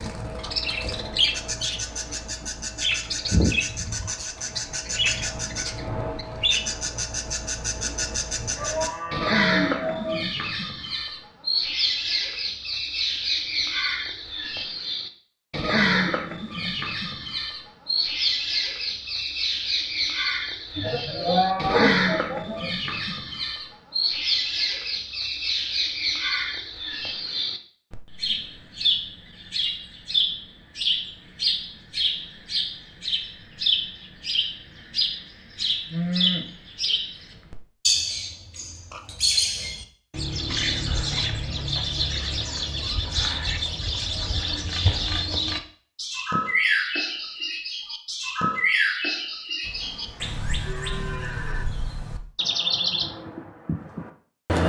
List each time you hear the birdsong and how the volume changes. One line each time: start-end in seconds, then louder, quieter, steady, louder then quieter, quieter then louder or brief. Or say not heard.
0.0-54.6 steady.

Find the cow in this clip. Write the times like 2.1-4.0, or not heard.
8.6-10.3, 20.8-22.7, 35.6-37.0, 49.6-51.6.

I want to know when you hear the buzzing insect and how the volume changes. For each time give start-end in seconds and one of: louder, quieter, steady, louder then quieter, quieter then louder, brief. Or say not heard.
not heard.